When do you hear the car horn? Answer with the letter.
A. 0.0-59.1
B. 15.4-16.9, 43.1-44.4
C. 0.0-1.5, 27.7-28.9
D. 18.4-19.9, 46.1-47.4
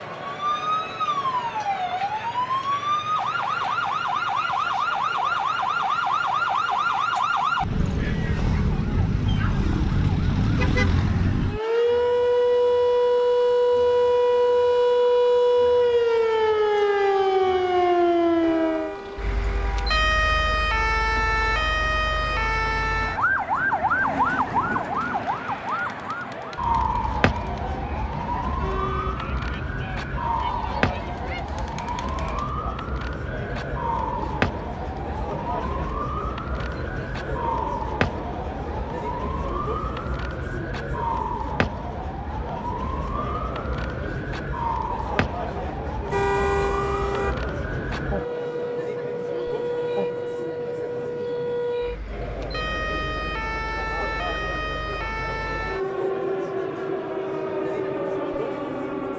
D.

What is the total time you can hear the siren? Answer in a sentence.
The siren can be heard for 59 seconds in total.